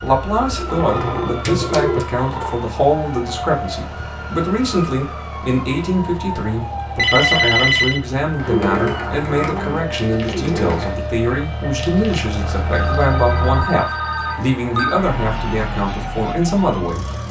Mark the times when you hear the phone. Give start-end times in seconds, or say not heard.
0.7-2.7, 7.0-8.0, 12.7-15.0.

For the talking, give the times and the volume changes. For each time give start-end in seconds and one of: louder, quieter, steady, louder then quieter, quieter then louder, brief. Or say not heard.
0.0-17.2 steady.